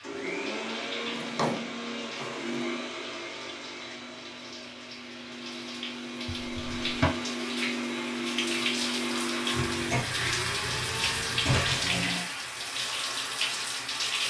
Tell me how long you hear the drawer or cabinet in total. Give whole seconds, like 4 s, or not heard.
5 s.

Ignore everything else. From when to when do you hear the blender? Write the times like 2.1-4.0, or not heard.
0.0-12.3.